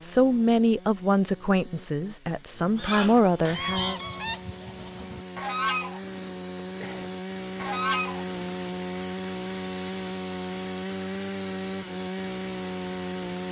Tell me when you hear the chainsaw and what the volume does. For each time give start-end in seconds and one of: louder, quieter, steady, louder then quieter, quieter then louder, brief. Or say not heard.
0.0-13.4 louder.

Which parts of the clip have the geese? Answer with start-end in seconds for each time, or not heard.
2.8-8.3.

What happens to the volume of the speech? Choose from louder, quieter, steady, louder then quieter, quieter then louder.
quieter then louder.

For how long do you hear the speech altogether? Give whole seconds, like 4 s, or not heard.
4 s.